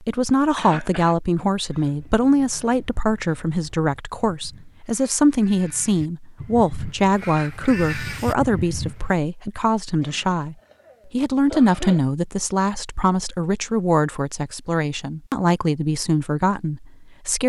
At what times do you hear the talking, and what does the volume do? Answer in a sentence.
You can hear the talking from 0.0 to 17.4 s, at a steady volume.